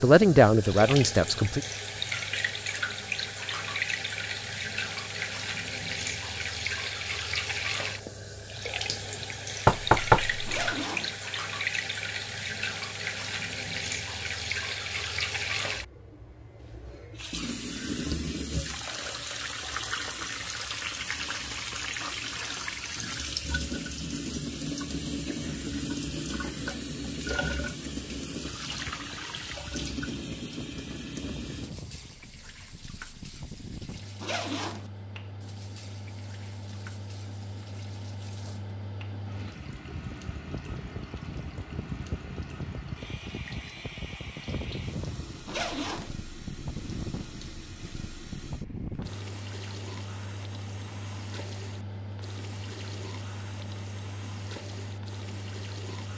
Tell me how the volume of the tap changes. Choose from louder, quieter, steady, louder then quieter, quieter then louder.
quieter.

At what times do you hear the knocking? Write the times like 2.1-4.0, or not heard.
9.7-10.8.